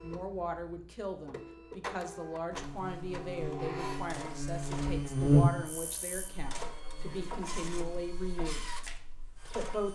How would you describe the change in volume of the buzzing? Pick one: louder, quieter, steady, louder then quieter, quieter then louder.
louder then quieter.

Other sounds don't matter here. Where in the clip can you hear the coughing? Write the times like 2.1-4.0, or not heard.
not heard.